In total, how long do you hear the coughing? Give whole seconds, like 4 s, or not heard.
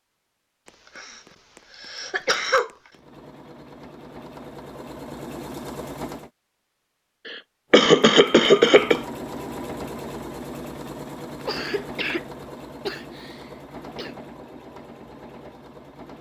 6 s.